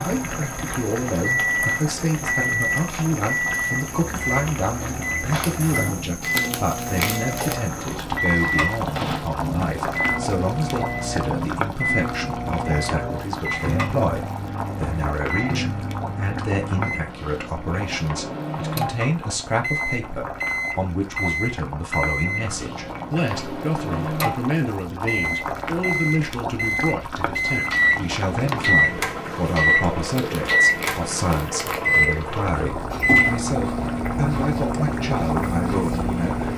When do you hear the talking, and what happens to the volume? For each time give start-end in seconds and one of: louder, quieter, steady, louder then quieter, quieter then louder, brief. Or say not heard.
0.0-36.5 steady.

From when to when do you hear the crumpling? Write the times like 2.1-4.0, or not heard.
6.2-7.5, 30.0-31.9.